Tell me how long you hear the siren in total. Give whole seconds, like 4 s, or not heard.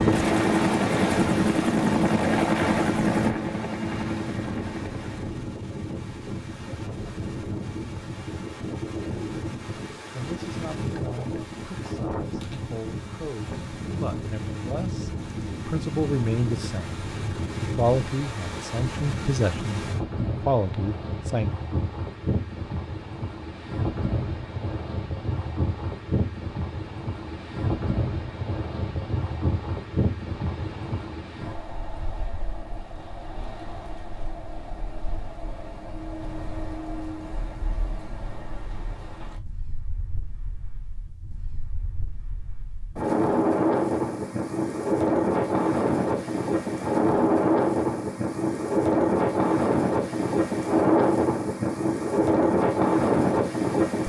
not heard.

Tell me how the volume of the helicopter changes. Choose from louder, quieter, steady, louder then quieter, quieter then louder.
quieter.